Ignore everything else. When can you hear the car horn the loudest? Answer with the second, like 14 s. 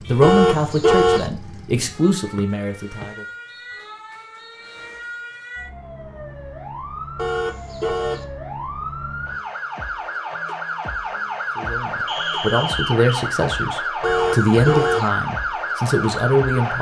1 s.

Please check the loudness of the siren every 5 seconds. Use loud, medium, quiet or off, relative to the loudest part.
quiet, medium, loud, loud.